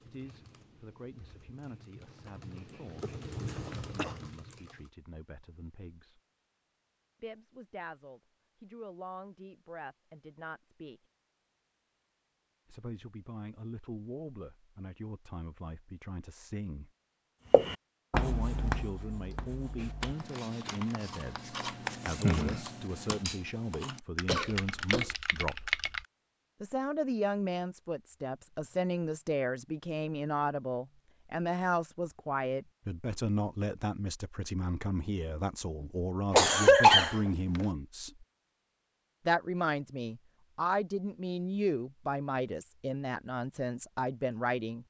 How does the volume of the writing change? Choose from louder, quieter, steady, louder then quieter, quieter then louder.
quieter then louder.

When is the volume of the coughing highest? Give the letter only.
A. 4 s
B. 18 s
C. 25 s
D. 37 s
D.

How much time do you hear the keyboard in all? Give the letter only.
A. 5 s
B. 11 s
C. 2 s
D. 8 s
B.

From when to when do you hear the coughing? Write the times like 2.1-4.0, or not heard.
3.0-4.2, 24.2-25.1, 36.3-37.6.